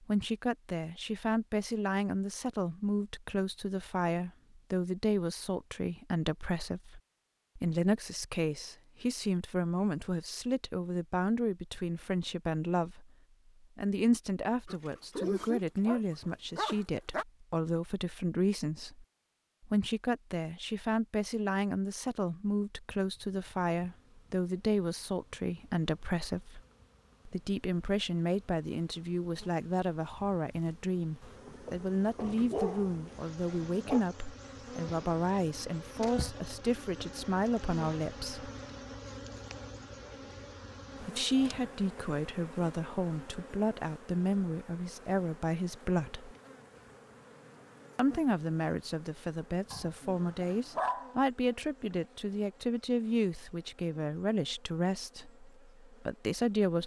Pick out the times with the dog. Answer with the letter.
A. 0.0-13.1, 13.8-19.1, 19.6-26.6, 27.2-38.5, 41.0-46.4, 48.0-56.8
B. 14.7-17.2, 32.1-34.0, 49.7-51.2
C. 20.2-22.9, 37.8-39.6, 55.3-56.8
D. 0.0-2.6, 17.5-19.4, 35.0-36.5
B.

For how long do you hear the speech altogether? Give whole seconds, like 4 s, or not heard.
51 s.